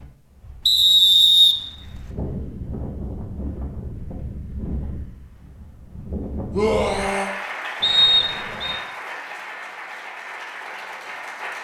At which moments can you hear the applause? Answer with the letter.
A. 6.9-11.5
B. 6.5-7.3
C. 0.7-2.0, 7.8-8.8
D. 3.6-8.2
A.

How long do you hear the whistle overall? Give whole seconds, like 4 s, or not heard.
2 s.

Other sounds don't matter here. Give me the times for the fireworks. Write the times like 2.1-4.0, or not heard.
not heard.